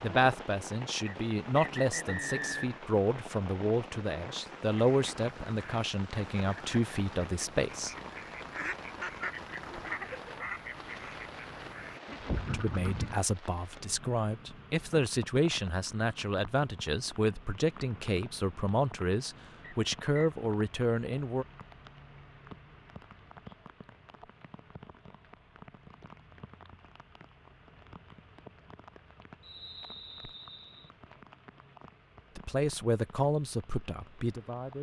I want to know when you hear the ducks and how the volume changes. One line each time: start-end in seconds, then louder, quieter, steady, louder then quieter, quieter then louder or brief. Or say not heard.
4.8-13.2 louder.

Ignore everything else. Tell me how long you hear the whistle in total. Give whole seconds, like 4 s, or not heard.
4 s.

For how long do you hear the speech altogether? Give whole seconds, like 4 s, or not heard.
19 s.